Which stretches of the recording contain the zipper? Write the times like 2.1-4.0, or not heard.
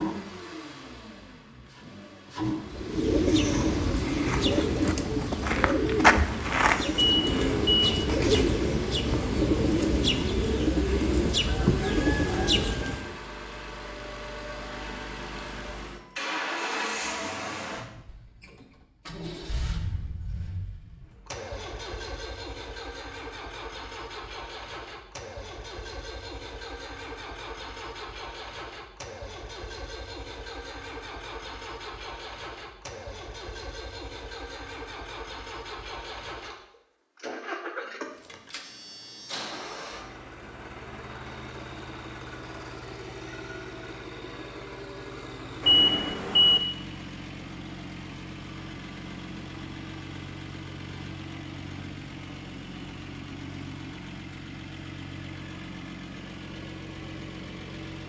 not heard.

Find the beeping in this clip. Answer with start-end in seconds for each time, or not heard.
7.0-7.9, 45.6-46.6.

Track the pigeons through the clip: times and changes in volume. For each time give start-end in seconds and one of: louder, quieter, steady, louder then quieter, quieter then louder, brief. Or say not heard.
2.6-13.2 steady.